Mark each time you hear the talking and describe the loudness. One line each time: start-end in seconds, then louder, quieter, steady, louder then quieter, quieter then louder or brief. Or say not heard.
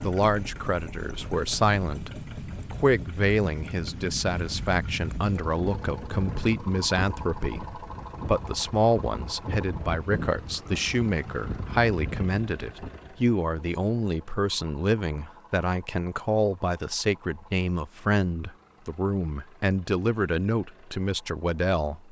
0.0-22.0 steady.